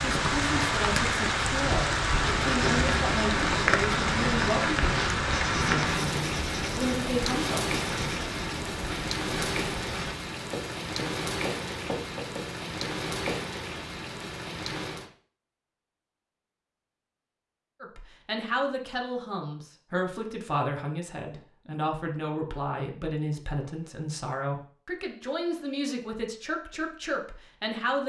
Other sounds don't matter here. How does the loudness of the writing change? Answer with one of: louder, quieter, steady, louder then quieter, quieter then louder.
quieter.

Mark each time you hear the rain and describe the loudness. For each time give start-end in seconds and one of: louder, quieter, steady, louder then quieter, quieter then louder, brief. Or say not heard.
0.0-15.1 quieter.